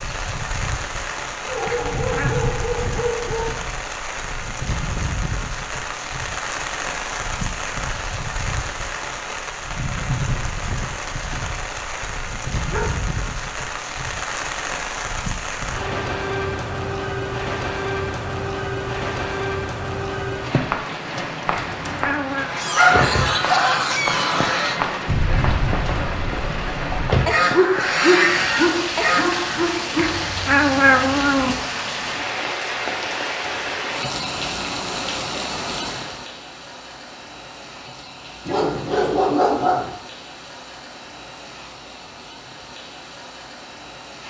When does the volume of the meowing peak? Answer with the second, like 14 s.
31 s.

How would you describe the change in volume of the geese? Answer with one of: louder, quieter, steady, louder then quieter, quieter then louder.
quieter then louder.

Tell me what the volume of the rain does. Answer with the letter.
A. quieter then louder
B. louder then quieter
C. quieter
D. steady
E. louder
C.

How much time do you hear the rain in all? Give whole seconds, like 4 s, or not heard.
44 s.